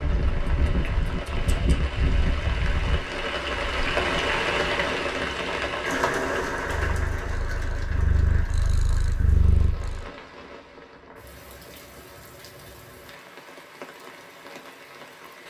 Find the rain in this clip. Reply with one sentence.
You can hear the rain from 0.0 to 15.4 s.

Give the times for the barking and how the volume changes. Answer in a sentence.
You can't hear the barking here.